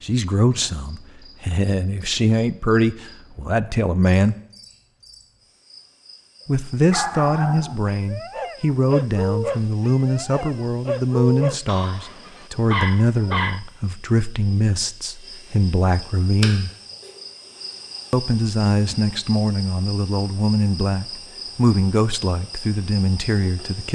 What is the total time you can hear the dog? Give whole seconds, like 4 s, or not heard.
7 s.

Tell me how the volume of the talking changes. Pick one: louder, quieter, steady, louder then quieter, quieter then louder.
steady.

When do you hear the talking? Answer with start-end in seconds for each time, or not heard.
0.0-4.3, 6.5-16.7, 18.1-23.9.